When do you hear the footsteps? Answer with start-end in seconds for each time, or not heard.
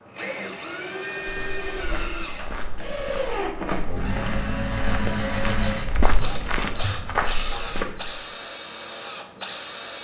1.2-8.2.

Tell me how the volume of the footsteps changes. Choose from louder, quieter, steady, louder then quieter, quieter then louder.
louder.